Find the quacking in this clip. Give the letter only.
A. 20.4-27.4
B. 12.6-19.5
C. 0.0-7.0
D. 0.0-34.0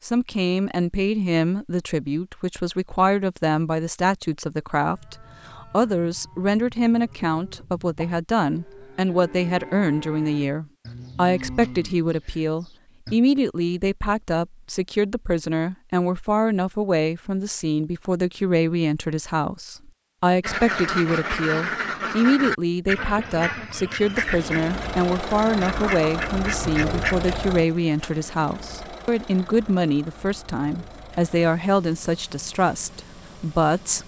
A.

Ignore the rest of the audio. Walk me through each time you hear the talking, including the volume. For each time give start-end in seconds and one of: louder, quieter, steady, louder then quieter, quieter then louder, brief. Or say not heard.
0.0-34.0 steady.